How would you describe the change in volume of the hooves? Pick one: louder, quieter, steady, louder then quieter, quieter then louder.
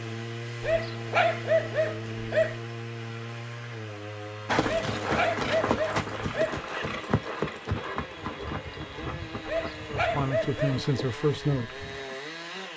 quieter.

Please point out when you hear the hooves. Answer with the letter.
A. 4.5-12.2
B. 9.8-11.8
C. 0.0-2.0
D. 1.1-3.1
A.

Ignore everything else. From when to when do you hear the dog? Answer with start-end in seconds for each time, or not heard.
0.6-2.5, 4.7-6.8, 9.4-10.8.